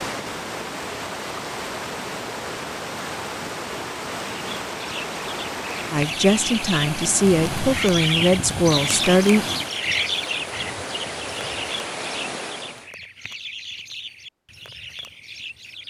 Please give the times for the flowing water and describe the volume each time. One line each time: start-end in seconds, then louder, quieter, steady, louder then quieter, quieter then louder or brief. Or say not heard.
0.0-12.9 steady.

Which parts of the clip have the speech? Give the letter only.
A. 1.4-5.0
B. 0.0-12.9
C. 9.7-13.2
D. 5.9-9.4
D.